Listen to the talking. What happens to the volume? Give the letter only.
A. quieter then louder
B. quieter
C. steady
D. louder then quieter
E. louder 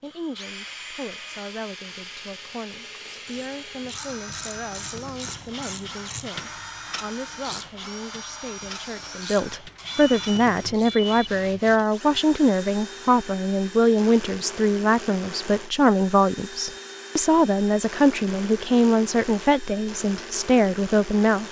E.